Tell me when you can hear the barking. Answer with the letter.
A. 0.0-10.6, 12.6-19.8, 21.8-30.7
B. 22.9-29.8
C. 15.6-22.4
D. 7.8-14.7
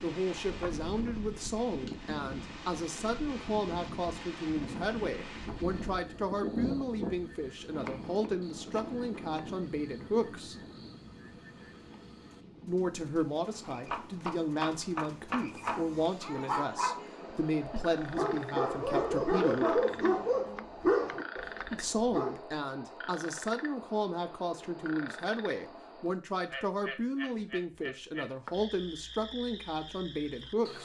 C.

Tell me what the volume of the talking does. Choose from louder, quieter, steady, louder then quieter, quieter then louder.
steady.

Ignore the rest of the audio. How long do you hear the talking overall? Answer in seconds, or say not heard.
27 s.